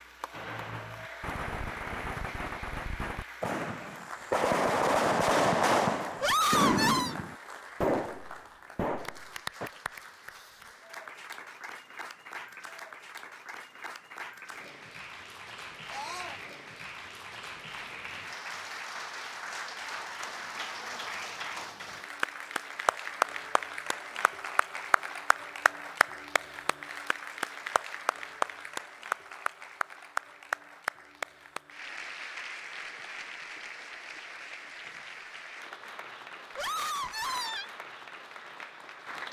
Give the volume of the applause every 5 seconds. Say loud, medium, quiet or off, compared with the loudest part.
medium, medium, medium, medium, loud, loud, loud, medium.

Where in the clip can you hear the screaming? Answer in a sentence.
The screaming can be heard from 6.2 to 7.2 s, from 15.9 to 16.4 s and from 36.5 to 37.7 s.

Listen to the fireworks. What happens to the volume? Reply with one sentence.
The volume of the fireworks goes up, then down.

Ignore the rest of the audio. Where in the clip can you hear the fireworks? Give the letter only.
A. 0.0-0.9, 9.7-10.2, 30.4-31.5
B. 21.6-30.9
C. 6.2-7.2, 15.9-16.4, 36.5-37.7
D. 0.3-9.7
D.